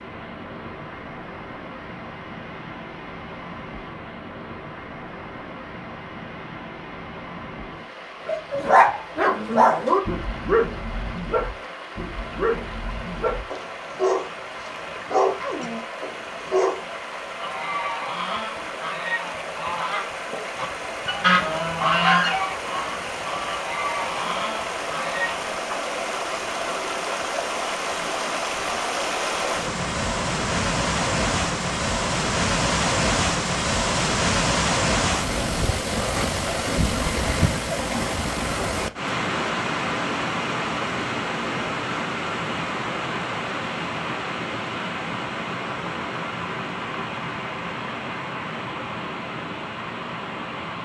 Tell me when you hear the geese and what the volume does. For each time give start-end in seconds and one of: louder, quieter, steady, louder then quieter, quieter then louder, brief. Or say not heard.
17.4-25.4 louder then quieter.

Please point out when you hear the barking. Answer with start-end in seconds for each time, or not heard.
8.2-16.8.